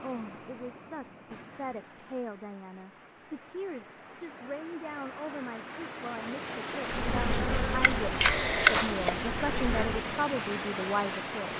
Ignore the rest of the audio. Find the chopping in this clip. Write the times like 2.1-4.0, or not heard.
not heard.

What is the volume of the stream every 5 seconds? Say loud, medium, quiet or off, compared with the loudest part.
quiet, loud, loud.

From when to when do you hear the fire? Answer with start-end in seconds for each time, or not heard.
not heard.